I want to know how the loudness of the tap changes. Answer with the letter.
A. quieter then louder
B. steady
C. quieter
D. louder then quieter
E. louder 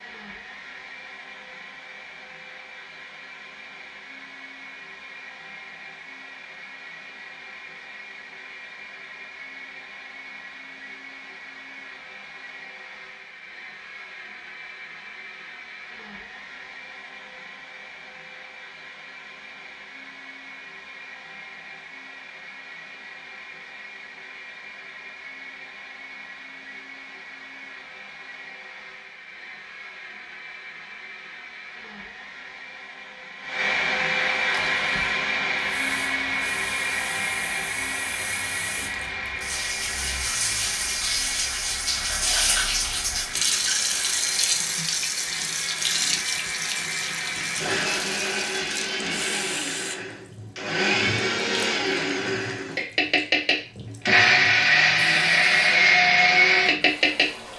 D.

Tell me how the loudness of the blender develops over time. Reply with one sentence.
The loudness of the blender goes up.